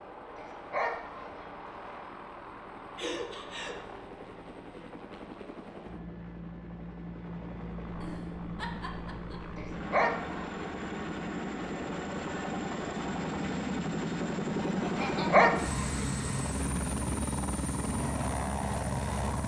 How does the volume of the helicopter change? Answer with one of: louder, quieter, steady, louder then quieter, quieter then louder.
louder.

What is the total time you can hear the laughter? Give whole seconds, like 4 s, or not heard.
3 s.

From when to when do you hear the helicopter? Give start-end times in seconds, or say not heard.
0.0-19.4.